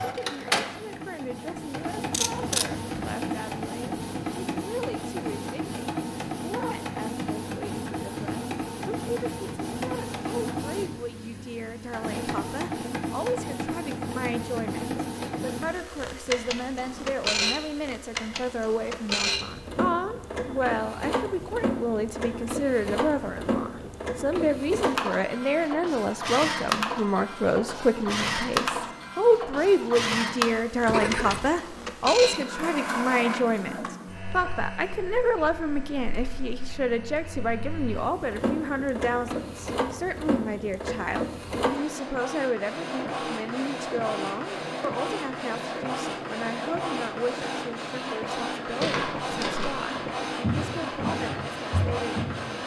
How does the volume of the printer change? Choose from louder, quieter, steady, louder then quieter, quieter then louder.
steady.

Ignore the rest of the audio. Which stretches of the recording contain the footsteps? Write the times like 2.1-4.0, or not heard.
48.8-52.5.